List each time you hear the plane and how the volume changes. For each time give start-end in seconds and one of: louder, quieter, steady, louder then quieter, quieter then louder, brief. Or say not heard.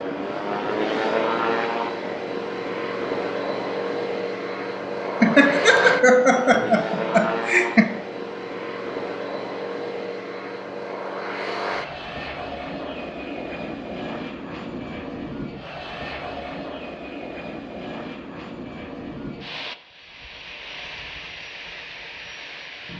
0.0-22.9 quieter.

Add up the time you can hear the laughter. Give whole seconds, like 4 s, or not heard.
3 s.